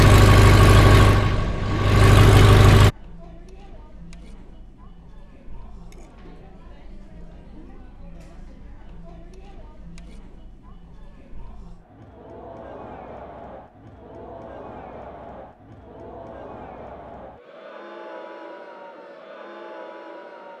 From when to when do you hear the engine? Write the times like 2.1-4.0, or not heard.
0.0-2.9.